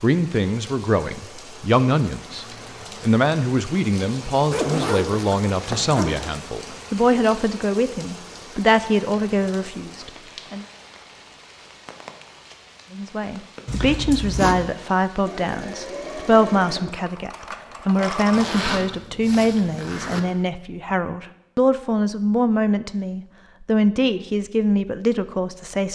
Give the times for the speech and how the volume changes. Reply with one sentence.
The speech can be heard from 0.0 to 10.7 s, at a steady volume; and from 12.9 to 25.9 s, at a steady volume.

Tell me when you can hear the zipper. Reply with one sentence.
The zipper can be heard from 4.5 to 6.2 s, from 13.7 to 14.7 s and from 18.3 to 20.2 s.